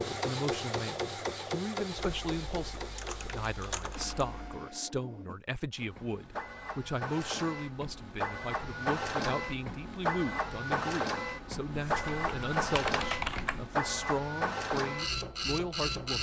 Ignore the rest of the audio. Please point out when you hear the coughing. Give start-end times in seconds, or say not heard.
not heard.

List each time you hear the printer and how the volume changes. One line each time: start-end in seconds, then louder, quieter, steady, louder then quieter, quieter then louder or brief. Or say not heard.
0.0-16.1 quieter then louder.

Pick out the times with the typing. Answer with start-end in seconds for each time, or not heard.
1.9-4.6, 11.7-13.7.